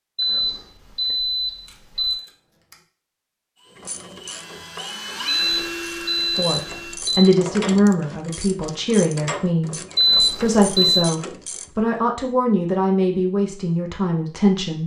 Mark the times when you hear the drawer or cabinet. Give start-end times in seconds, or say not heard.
not heard.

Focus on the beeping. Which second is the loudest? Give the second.
10 s.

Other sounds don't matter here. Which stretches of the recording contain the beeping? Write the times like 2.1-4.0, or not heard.
0.1-2.1, 5.2-7.2, 9.9-11.1.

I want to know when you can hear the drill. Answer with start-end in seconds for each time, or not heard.
3.5-7.0.